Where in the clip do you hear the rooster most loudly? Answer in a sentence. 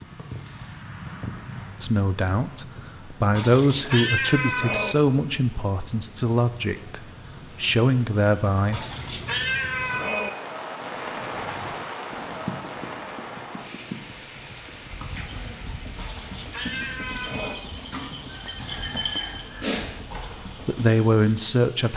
The volume of the rooster peaks at 20 seconds.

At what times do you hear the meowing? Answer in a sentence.
You can hear the meowing from 3.3 to 5.0 s, from 8.7 to 10.3 s and from 15.9 to 17.6 s.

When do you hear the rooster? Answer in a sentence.
You can hear the rooster from 17.1 to 20.4 s.